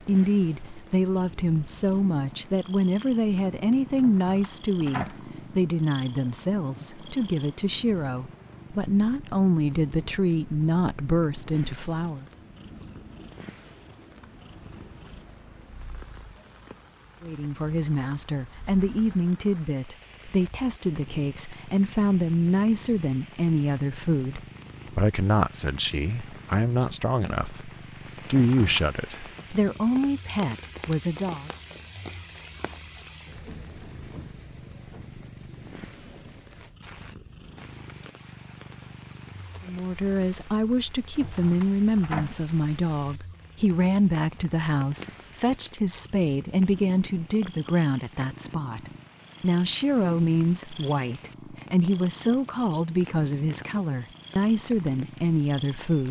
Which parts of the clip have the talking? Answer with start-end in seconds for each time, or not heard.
0.1-12.2, 17.2-31.5, 39.6-56.0.